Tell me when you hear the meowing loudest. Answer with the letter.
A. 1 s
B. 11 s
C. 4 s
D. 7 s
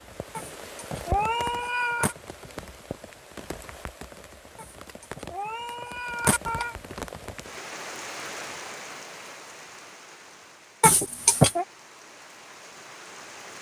B.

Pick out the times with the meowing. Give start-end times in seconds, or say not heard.
0.3-2.1, 4.5-6.8, 10.8-11.7.